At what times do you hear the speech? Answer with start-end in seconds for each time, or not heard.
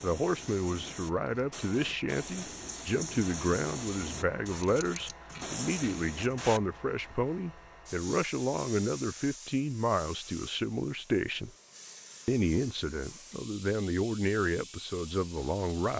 0.0-11.5, 12.2-15.9.